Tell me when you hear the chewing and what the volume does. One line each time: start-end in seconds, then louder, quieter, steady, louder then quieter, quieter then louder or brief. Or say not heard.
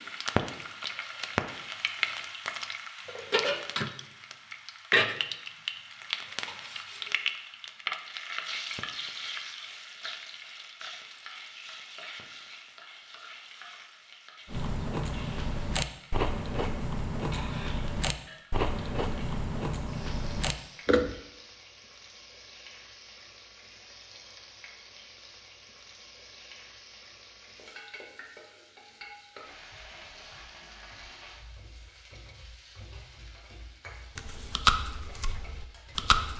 14.4-21.2 steady
34.1-36.3 brief.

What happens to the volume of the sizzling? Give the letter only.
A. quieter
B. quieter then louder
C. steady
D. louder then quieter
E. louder
A.